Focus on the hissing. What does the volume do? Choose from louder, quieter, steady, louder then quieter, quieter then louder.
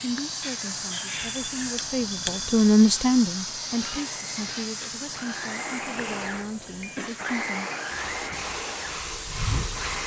quieter then louder.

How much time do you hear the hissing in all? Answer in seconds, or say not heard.
10 s.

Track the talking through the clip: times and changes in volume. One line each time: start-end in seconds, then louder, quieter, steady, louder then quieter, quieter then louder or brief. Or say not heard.
0.0-7.7 louder then quieter.